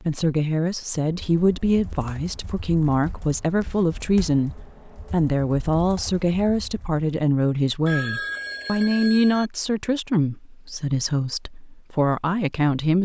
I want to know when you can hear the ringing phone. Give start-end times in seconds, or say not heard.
7.8-9.5.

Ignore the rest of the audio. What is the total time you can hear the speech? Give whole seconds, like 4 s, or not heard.
13 s.